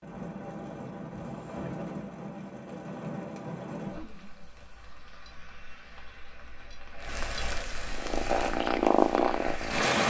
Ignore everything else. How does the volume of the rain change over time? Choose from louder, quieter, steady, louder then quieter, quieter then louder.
quieter then louder.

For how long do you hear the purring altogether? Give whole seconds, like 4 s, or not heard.
2 s.